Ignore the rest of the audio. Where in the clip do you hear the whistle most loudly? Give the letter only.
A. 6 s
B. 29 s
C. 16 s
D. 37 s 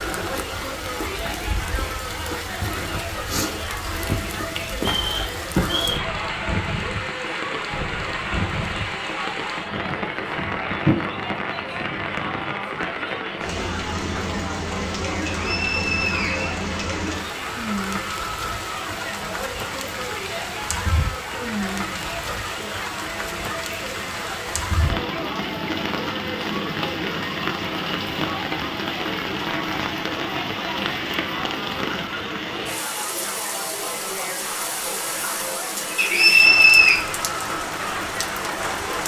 D.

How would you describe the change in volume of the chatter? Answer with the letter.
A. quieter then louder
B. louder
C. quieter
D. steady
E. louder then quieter
D.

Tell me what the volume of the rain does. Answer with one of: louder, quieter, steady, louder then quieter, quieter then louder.
steady.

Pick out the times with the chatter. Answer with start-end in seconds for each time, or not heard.
0.0-39.0.